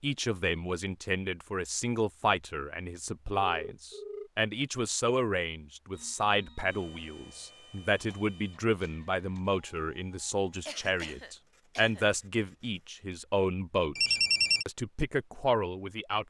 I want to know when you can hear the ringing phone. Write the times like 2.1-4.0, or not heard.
3.5-4.3, 13.9-14.7.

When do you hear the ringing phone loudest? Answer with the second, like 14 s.
14 s.